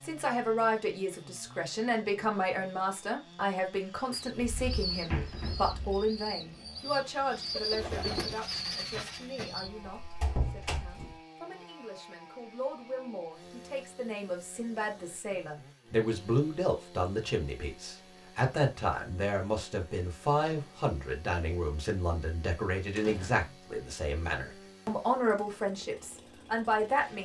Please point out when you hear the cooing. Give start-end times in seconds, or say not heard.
4.1-9.7.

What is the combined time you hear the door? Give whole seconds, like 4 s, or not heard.
4 s.